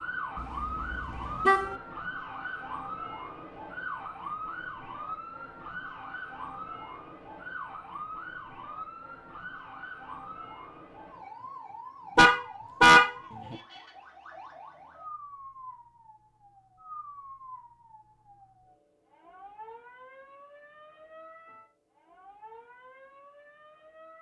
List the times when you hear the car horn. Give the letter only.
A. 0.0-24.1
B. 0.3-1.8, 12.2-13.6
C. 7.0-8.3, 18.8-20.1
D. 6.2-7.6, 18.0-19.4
B.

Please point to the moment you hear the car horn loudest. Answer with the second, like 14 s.
13 s.